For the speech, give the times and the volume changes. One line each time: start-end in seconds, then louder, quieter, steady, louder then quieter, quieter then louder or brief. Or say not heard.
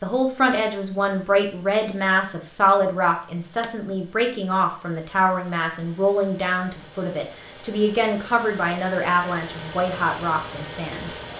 0.0-11.2 steady.